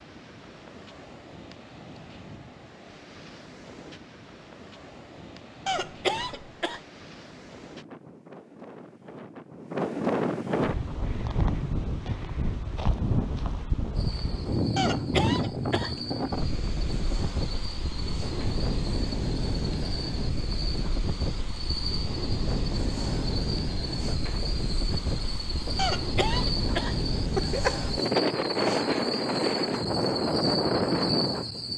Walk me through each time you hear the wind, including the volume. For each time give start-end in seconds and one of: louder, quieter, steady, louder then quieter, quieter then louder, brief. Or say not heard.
0.0-31.7 louder.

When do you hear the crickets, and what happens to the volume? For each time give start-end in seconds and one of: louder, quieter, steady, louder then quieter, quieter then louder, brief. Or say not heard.
13.9-31.7 louder.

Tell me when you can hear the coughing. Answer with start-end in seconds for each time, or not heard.
5.7-6.8, 14.8-16.1, 25.8-27.8.